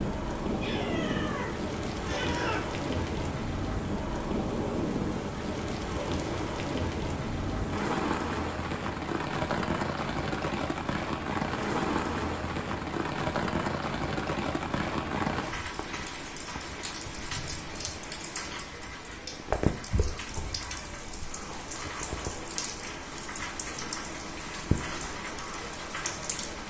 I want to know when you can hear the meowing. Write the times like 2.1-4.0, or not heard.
0.6-2.6.